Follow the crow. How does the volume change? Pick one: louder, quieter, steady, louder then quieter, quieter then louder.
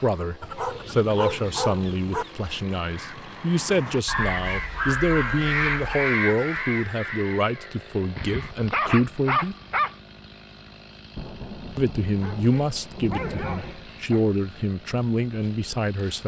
louder then quieter.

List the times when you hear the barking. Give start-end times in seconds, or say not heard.
0.4-2.2, 4.0-6.1, 8.2-9.9, 12.2-14.2.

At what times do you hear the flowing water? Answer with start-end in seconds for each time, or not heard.
not heard.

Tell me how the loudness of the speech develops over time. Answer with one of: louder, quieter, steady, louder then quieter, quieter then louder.
steady.